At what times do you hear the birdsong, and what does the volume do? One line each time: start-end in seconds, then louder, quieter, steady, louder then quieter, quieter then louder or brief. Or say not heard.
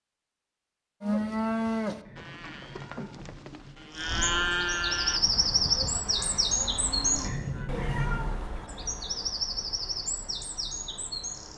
4.0-11.5 quieter.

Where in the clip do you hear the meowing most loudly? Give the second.
8 s.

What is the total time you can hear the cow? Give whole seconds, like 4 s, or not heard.
7 s.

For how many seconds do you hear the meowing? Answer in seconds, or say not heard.
3 s.